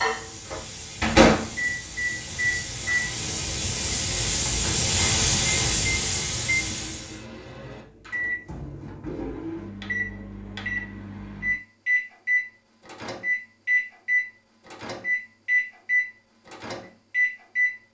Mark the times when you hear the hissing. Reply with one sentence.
You can hear the hissing from 0.0 to 7.2 s.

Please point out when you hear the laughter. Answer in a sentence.
The laughter can't be heard in this clip.